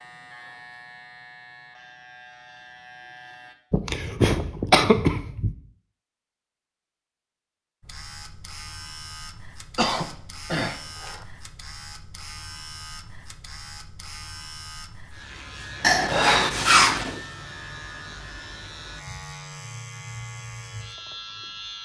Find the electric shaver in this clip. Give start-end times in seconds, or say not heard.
0.0-3.5, 7.8-21.8.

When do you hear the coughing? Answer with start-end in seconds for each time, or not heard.
3.7-5.5, 9.8-11.2, 15.8-17.2.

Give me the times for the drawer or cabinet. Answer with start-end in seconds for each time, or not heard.
not heard.